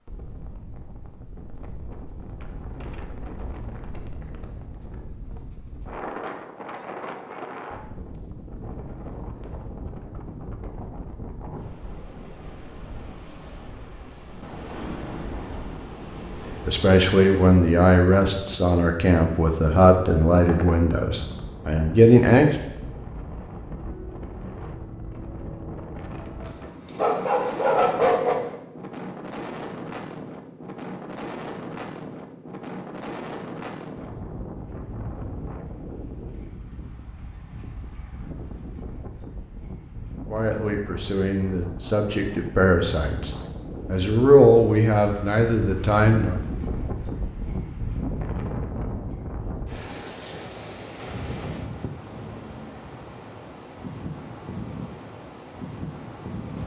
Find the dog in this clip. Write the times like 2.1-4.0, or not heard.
26.4-28.4.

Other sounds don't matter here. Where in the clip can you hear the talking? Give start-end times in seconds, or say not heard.
16.6-22.6, 40.3-46.4.